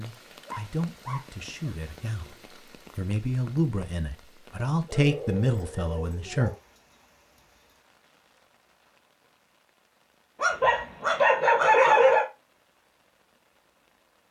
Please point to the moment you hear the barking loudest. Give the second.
12 s.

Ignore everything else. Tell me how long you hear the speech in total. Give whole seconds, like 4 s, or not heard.
6 s.